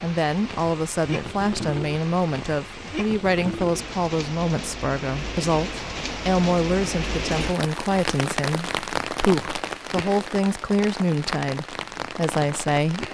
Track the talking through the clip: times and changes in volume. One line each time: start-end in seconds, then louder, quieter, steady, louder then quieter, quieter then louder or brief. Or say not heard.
0.0-13.0 steady.